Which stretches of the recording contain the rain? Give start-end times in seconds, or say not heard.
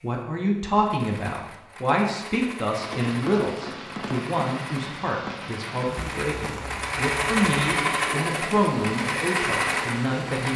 2.7-10.5.